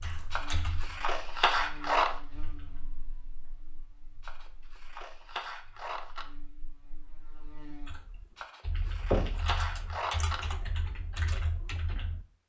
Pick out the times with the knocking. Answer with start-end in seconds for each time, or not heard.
0.0-0.7, 9.1-9.6.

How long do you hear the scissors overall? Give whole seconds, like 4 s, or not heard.
6 s.